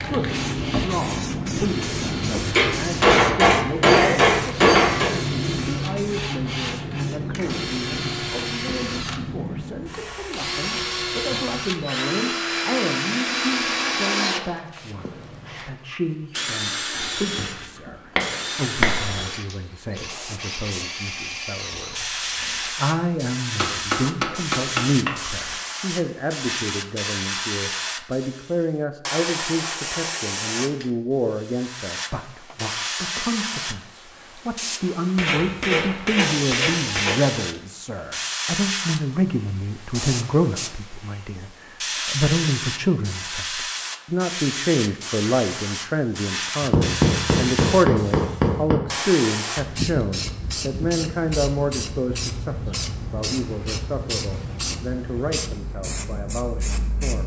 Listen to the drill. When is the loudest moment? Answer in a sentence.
The loudest moment of the drill is at 14 seconds.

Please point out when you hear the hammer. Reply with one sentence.
You can hear the hammer from 2.5 to 5.2 s, from 16.9 to 19.2 s, from 23.6 to 25.6 s, from 35.1 to 37.1 s and from 46.6 to 48.8 s.